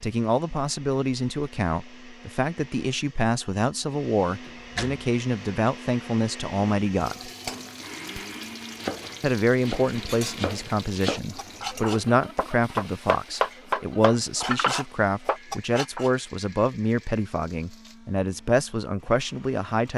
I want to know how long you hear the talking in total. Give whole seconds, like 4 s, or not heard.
18 s.